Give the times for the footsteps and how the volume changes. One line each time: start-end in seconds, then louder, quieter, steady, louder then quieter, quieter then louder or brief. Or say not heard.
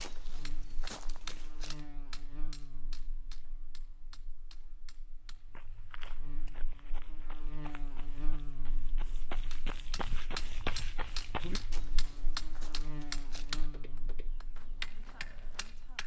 0.0-1.8 brief
5.5-16.0 louder then quieter.